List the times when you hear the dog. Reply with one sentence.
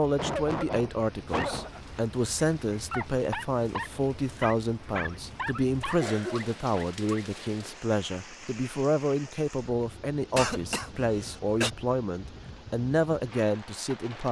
The dog can be heard from 1.2 to 7.8 s.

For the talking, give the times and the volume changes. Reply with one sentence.
The talking can be heard from 0.0 to 14.2 s, at a steady volume.